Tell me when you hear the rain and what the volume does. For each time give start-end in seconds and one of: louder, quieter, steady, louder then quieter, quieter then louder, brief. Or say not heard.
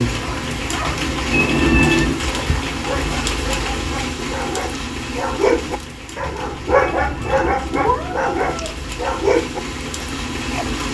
0.0-10.9 quieter then louder.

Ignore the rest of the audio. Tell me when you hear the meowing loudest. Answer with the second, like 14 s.
2 s.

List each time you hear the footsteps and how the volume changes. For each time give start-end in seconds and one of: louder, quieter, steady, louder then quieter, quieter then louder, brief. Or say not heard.
not heard.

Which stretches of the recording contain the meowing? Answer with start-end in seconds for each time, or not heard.
1.3-2.2, 7.0-8.7.